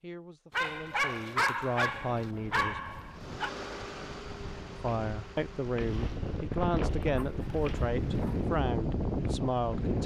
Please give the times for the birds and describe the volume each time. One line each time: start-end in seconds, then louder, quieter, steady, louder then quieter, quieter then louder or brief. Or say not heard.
not heard.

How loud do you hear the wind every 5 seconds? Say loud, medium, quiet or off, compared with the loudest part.
quiet, loud.